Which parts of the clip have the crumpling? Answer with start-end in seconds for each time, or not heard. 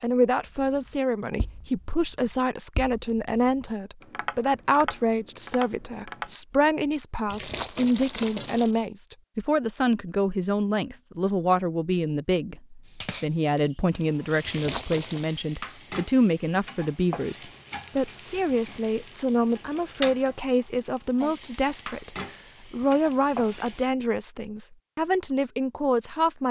7.2-8.8, 14.4-15.3.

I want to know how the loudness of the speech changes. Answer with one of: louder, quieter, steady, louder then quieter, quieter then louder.
steady.